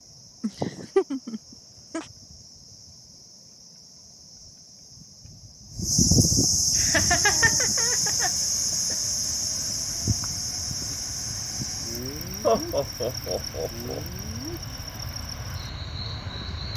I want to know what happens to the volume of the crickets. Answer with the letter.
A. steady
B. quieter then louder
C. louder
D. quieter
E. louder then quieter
E.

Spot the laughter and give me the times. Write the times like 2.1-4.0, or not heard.
0.4-2.0, 6.8-8.3, 12.4-14.0.